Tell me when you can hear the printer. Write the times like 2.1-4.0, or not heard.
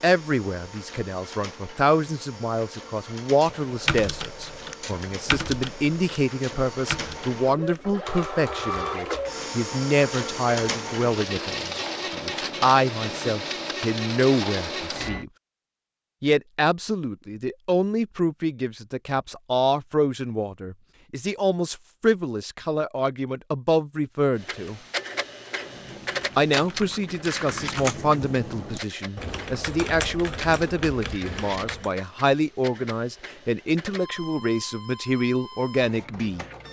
0.0-15.2, 24.4-36.6.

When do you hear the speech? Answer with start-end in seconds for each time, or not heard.
0.0-15.3, 16.2-24.8, 26.4-36.5.